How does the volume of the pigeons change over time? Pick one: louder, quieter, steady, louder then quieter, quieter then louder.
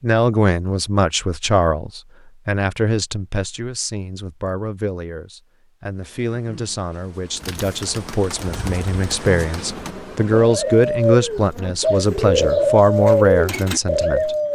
louder.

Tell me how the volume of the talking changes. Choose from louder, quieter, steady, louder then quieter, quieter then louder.
quieter then louder.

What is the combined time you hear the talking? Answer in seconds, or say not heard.
14 s.